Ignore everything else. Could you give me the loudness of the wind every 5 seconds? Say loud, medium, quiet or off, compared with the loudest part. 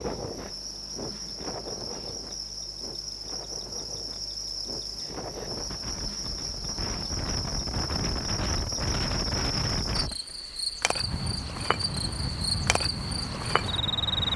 medium, loud, loud.